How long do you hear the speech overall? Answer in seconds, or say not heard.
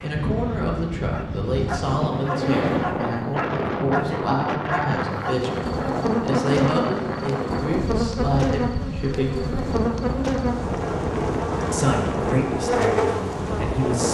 12 s.